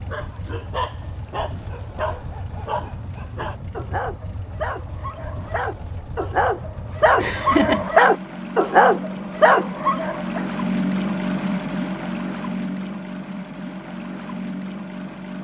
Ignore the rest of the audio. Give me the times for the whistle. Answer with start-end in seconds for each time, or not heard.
not heard.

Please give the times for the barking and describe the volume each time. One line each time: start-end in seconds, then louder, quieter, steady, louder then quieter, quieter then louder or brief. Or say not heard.
0.1-10.4 louder.